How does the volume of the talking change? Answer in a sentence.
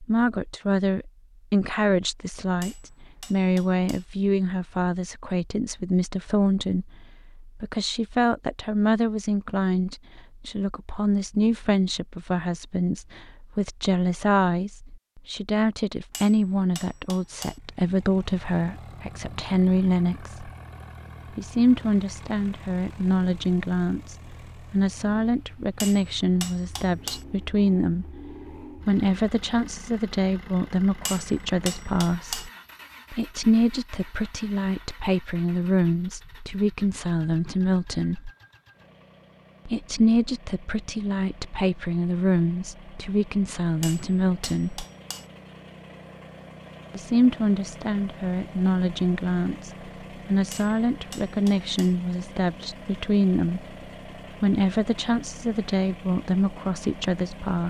The loudness of the talking stays about the same.